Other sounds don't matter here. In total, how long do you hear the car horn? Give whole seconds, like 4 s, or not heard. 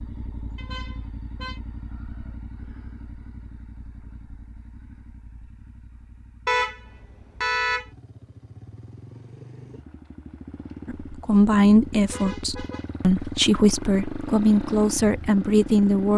4 s.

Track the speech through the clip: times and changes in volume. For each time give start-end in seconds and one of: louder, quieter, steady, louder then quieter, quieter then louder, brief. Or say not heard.
10.8-16.1 quieter then louder.